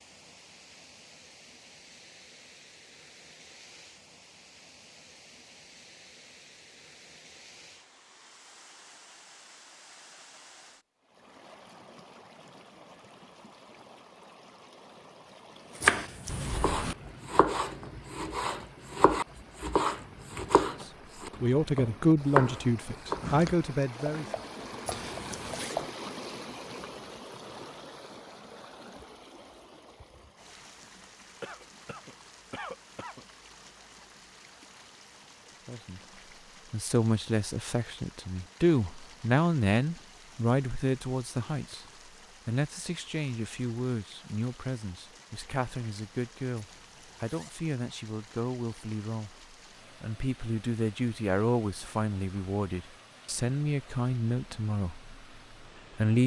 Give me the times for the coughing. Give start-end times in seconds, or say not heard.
31.4-33.2.